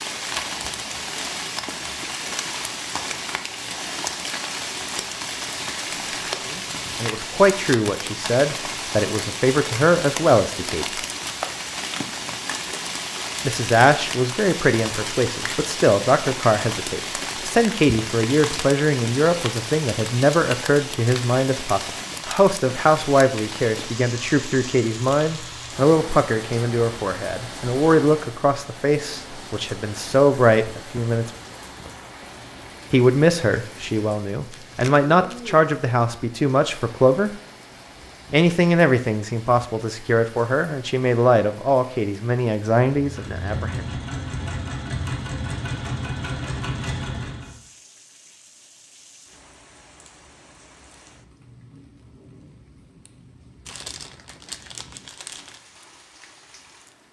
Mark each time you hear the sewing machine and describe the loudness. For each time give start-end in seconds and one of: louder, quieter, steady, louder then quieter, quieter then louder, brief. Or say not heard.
43.0-47.5 steady.